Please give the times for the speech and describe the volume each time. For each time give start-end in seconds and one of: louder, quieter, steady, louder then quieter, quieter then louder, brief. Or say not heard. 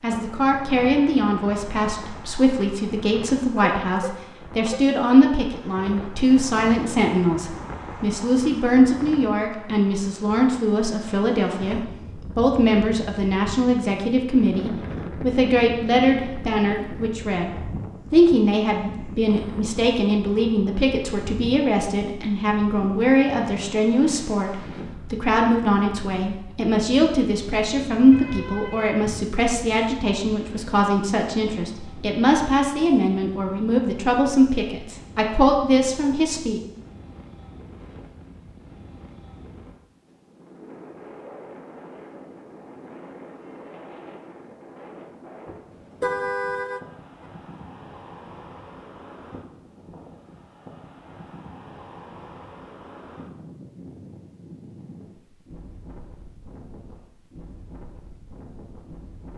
0.0-36.6 steady.